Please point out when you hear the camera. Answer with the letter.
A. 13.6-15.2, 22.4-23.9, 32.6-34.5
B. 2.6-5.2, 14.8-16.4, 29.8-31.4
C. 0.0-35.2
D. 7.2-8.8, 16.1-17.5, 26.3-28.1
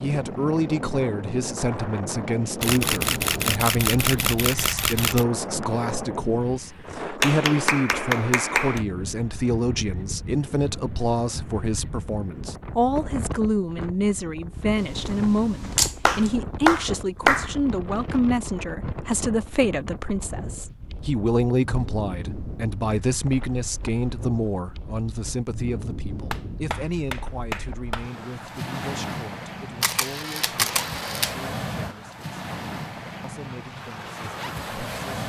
B.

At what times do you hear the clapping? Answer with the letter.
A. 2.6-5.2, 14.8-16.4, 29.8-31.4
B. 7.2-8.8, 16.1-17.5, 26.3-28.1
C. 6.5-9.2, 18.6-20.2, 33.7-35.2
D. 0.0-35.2
B.